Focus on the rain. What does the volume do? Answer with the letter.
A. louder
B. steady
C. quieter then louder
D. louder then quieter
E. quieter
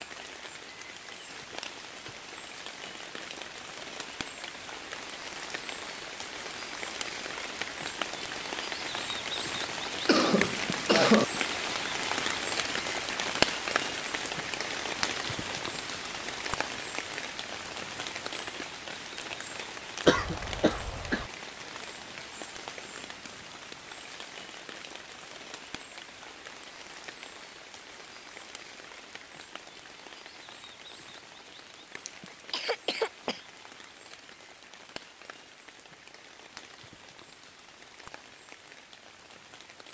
D.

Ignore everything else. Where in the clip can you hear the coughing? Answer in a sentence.
The coughing can be heard from 10.1 to 11.2 s, from 20.1 to 21.2 s and from 32.0 to 33.5 s.